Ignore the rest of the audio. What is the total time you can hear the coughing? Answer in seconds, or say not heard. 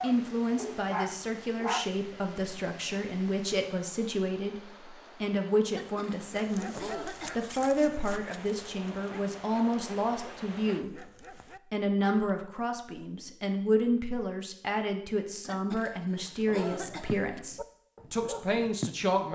4 s.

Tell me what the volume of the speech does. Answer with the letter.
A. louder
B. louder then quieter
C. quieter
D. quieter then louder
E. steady
E.